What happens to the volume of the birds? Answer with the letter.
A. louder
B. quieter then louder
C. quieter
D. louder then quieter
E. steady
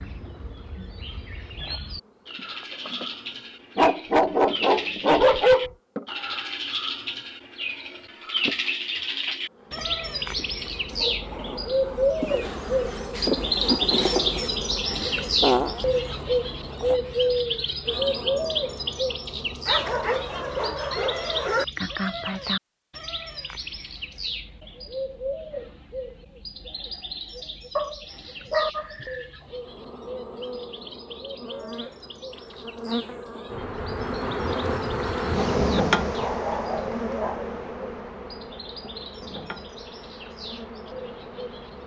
D.